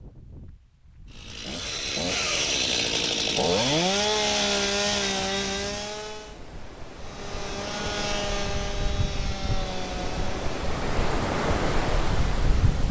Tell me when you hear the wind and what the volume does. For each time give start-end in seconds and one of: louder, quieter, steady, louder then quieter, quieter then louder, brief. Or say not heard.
0.0-12.8 louder.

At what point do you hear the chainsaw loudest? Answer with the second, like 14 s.
4 s.